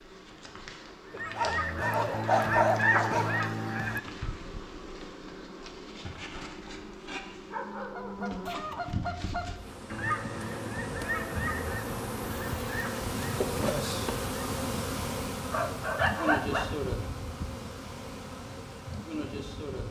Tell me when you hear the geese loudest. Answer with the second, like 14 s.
3 s.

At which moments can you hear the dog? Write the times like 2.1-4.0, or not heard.
1.1-3.4, 7.5-8.9, 15.5-16.8.